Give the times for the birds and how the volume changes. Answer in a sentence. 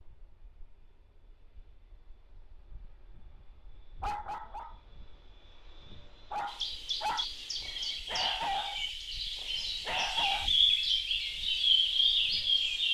The birds can be heard from 6.5 to 12.9 s, getting louder.